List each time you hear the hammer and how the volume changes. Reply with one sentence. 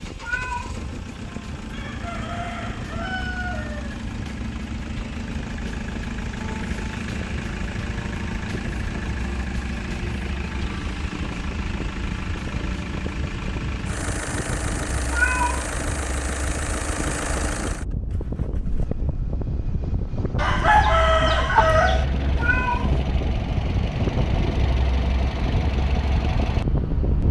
The hammer can't be heard in this clip.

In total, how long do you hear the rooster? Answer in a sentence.
You can hear the rooster for 4 seconds altogether.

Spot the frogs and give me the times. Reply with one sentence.
You can't hear the frogs here.